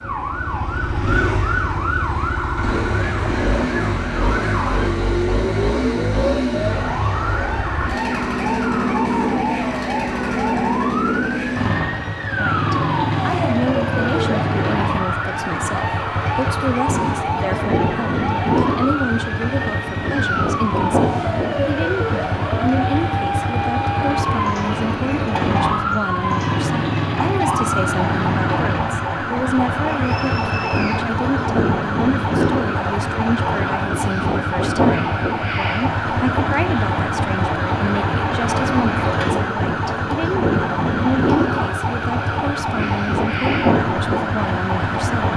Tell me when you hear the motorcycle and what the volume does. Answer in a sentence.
You can hear the motorcycle from 0.0 to 45.3 s, at a steady volume.